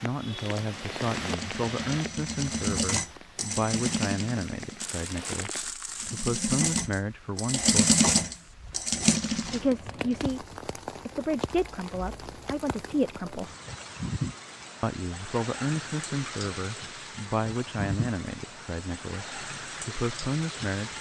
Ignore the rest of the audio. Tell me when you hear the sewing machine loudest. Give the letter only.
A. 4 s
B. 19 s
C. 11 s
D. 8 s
D.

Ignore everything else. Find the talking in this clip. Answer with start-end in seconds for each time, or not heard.
0.0-7.9, 9.5-10.4, 11.1-13.5, 14.8-20.9.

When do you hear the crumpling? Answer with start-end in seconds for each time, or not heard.
4.8-6.3.